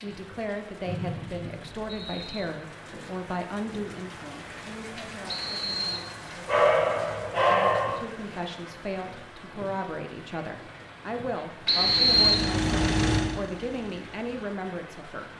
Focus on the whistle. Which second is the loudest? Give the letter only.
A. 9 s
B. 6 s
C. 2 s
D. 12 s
D.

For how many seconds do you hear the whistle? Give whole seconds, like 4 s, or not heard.
3 s.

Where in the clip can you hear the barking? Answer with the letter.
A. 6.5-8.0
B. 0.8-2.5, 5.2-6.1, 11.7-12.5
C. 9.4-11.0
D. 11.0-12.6
A.